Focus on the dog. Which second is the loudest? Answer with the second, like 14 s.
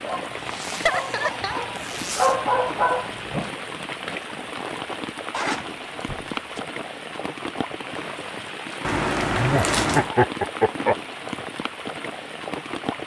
2 s.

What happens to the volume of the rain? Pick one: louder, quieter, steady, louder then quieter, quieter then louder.
steady.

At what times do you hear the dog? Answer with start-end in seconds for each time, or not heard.
0.0-3.5.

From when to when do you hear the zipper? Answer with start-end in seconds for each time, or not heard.
0.5-2.4, 5.3-6.6, 8.8-10.1.